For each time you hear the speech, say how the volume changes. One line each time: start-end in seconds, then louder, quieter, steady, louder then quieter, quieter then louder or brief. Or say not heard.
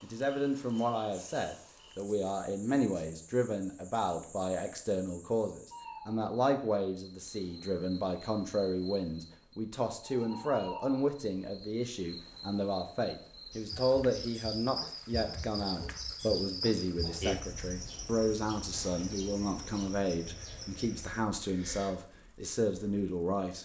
0.0-23.6 steady.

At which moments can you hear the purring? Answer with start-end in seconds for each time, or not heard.
not heard.